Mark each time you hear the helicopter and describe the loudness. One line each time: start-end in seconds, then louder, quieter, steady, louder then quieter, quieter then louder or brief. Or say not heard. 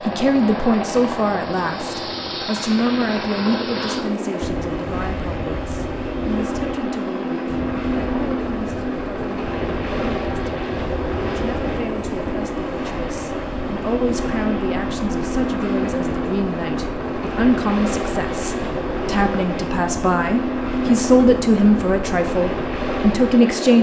0.0-23.7 steady.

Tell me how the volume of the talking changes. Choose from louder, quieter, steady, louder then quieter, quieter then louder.
quieter then louder.